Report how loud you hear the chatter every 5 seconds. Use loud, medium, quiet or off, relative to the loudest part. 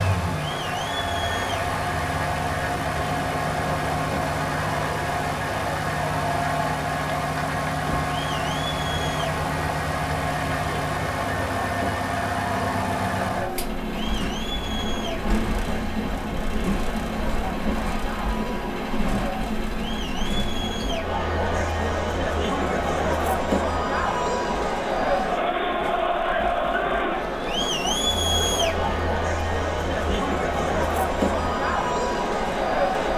medium, medium, medium, medium, loud, loud, loud.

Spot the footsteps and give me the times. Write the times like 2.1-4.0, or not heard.
not heard.